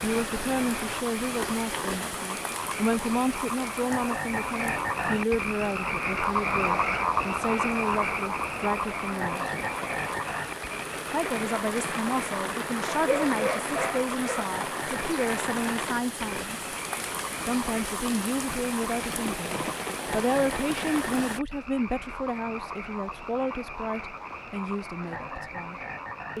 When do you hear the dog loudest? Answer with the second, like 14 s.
13 s.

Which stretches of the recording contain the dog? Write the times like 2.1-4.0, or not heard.
12.9-14.6.